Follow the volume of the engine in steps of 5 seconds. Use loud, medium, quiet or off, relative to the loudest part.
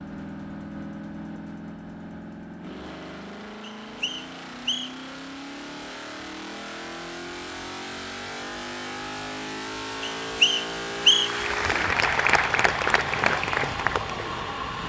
medium, loud, loud.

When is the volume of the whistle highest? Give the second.
11 s.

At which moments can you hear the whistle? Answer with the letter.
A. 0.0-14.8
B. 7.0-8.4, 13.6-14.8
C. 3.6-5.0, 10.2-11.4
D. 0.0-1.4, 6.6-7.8
C.